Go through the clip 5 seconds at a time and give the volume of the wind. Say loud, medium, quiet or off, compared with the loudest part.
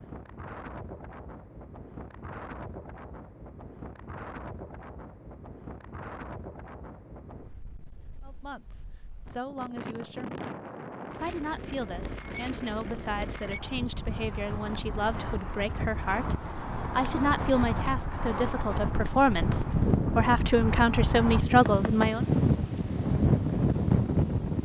quiet, quiet, quiet, medium, loud.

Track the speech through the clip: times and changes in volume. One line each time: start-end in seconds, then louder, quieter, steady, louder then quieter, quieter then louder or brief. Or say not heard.
8.2-10.3 brief
11.2-22.2 louder.